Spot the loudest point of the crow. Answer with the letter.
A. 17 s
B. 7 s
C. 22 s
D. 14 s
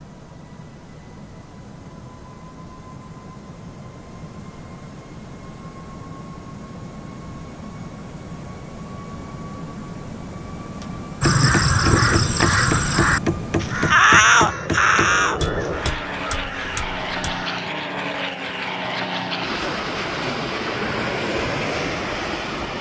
D.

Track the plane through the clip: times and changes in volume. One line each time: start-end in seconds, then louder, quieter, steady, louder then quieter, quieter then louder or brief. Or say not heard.
0.0-22.7 louder.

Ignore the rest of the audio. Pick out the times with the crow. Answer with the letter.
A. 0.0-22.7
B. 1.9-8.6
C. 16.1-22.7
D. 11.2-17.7
D.